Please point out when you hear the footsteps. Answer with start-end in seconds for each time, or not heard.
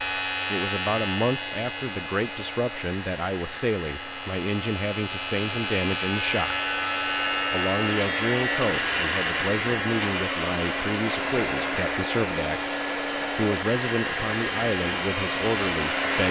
not heard.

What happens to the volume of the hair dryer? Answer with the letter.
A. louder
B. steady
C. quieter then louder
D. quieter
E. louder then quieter
A.